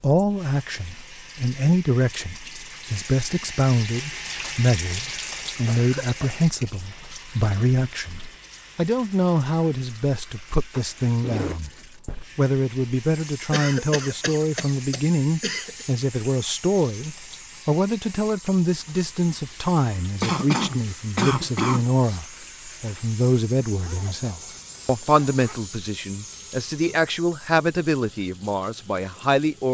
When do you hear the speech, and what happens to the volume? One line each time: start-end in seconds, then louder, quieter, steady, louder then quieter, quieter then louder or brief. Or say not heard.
0.0-11.7 steady
12.3-29.6 steady.